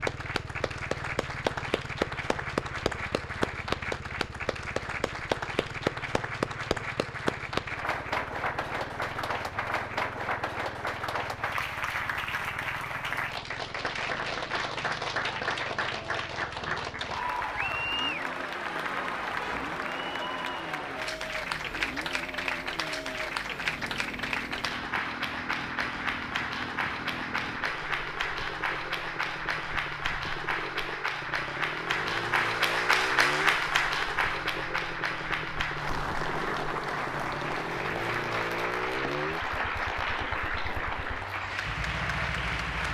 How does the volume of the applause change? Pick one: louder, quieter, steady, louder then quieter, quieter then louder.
steady.